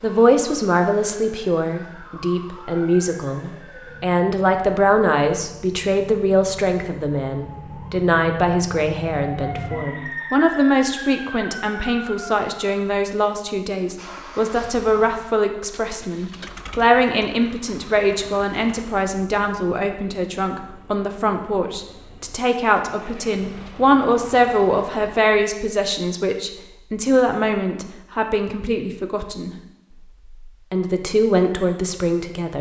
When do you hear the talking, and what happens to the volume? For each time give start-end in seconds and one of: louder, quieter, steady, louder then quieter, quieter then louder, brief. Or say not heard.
0.0-32.5 steady.